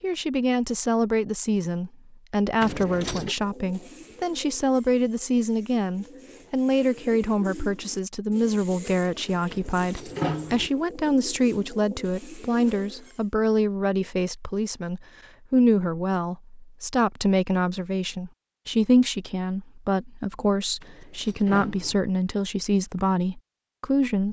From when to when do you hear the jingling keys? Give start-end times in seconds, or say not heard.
2.6-3.4, 9.5-10.7, 20.8-22.0.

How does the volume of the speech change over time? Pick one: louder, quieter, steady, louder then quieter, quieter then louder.
steady.